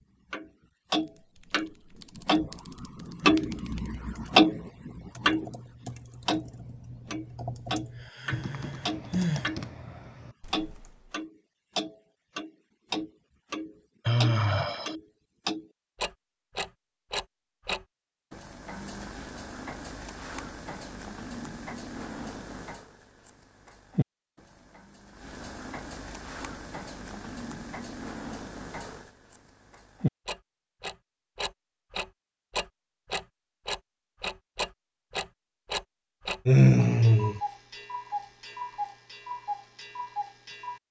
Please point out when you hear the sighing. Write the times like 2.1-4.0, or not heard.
7.8-9.5, 14.1-14.9, 36.5-37.4.